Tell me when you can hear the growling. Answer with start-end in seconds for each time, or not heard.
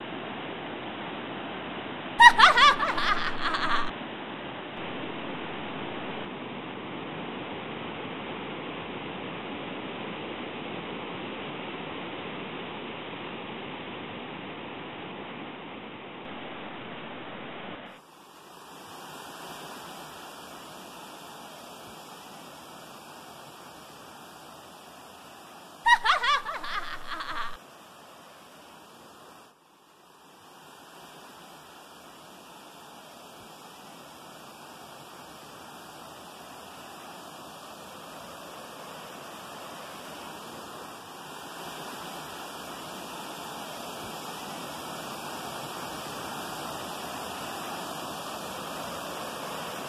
not heard.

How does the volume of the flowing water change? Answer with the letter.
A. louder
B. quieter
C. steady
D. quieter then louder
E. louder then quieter
D.